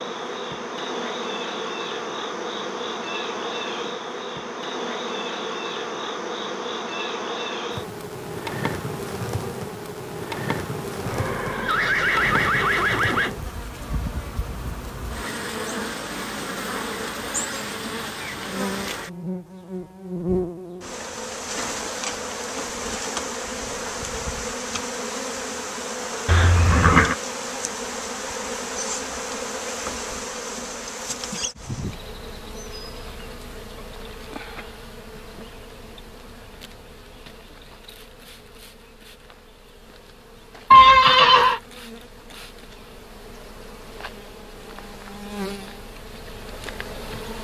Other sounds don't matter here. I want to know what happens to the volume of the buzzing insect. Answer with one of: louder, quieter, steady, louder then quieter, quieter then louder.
quieter.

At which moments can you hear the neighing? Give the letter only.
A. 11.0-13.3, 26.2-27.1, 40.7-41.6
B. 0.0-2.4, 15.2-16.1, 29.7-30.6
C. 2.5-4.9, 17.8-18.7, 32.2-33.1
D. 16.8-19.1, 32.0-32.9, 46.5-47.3
A.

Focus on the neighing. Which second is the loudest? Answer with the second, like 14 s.
41 s.